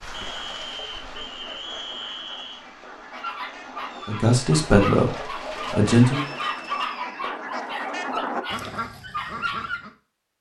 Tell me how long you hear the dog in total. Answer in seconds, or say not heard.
7 s.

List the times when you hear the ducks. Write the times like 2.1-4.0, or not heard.
0.0-9.9.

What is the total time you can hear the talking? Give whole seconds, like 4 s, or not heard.
2 s.